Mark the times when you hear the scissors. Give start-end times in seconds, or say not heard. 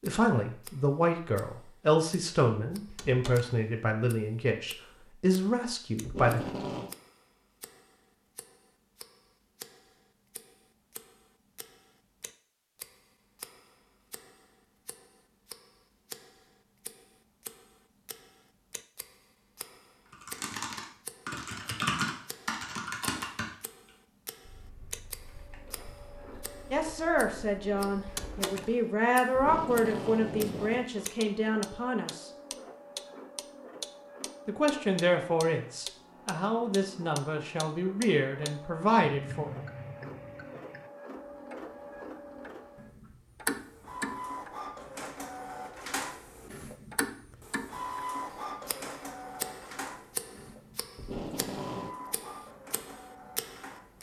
not heard.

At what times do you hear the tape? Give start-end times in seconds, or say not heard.
6.0-7.0, 29.3-30.9, 51.0-52.0.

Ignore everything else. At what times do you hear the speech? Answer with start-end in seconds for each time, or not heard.
0.0-6.4, 26.7-32.3, 34.5-39.5.